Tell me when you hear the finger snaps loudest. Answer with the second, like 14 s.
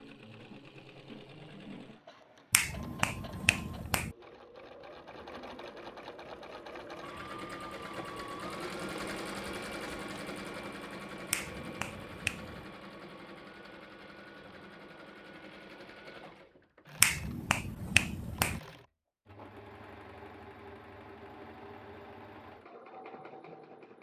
17 s.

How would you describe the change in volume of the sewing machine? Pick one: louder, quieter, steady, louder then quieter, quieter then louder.
louder then quieter.